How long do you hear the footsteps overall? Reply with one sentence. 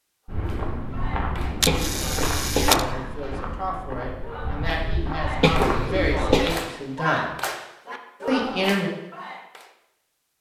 You can hear the footsteps for 6 seconds altogether.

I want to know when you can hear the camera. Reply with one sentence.
You can hear the camera from 1.6 to 2.9 s.